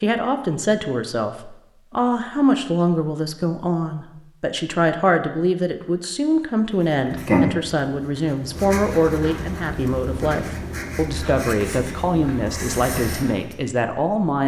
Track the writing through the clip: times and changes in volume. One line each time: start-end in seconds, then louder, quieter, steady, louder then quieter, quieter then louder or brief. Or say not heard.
6.8-13.7 quieter.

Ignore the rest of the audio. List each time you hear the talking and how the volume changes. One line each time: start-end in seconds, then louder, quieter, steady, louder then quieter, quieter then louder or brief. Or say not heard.
0.0-14.4 steady.